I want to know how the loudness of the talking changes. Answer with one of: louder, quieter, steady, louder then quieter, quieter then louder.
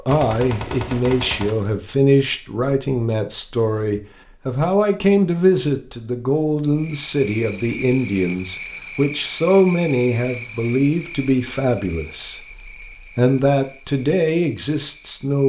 steady.